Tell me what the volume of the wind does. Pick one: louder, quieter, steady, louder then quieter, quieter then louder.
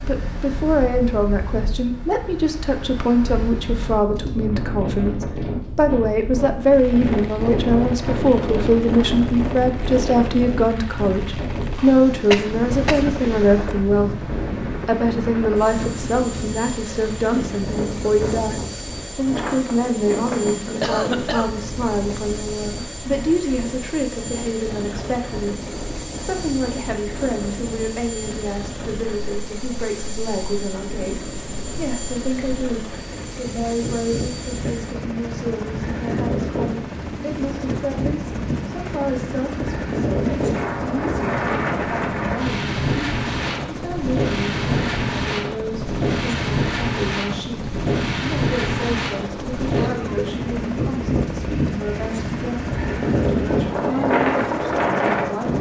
quieter then louder.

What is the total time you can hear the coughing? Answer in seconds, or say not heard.
3 s.